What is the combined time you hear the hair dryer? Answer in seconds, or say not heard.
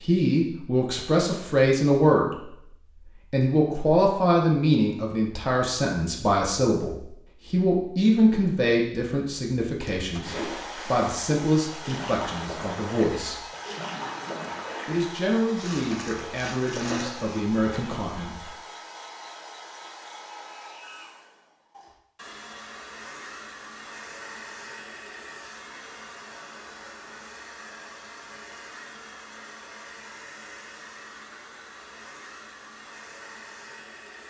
24 s.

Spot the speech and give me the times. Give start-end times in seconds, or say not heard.
0.0-2.5, 3.3-13.4, 14.8-18.5.